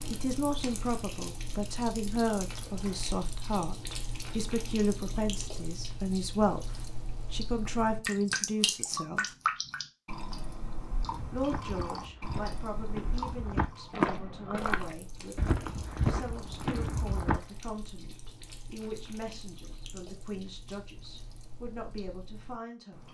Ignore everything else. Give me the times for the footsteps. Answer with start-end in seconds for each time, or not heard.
11.0-17.4.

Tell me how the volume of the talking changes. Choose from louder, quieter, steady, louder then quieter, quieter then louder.
quieter.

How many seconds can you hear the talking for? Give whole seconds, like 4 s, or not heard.
21 s.